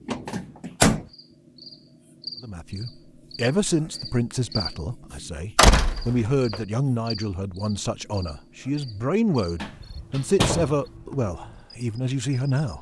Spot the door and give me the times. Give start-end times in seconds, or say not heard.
0.1-1.1, 5.5-6.6, 9.6-10.8.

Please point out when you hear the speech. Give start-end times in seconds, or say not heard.
2.4-12.7.